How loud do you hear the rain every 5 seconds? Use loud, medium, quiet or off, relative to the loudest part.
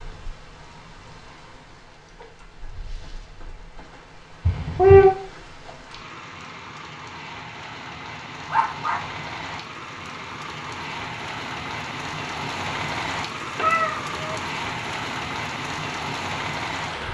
quiet, medium, loud, loud.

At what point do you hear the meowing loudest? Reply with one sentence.
The volume of the meowing peaks at 5 seconds.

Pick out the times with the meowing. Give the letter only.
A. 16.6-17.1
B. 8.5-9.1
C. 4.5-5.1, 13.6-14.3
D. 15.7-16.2
C.